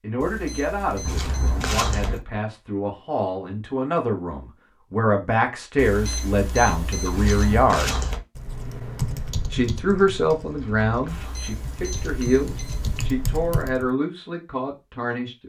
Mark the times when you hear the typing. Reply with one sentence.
You can hear the typing from 8.3 to 13.9 s.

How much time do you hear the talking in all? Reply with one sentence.
The talking can be heard for 14 seconds in total.